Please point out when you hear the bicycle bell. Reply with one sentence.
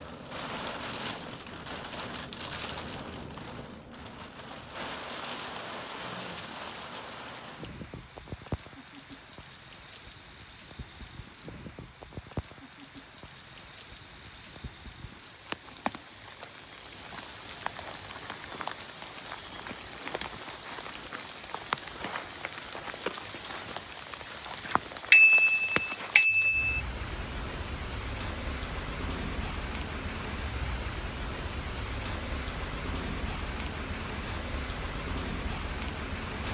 The bicycle bell can be heard from 25.1 to 26.8 s.